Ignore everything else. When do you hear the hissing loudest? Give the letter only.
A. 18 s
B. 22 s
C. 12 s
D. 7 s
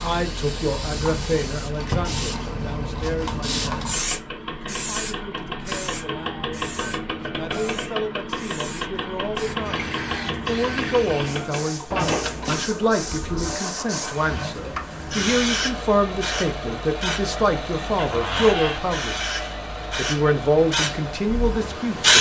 B.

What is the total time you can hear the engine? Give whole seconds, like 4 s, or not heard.
22 s.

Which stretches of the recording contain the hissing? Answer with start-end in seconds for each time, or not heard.
0.0-22.1.